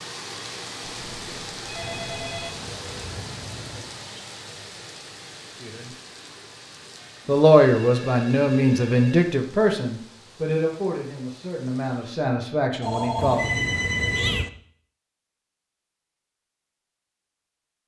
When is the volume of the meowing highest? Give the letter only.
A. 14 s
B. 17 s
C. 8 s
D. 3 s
A.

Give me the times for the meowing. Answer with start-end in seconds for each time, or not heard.
1.8-3.9, 13.2-14.4.